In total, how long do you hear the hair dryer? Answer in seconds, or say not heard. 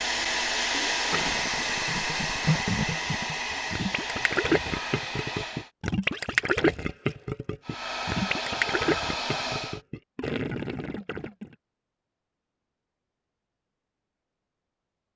8 s.